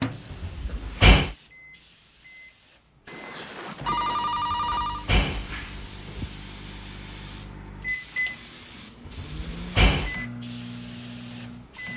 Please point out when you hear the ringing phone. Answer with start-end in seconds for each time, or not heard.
3.0-5.0.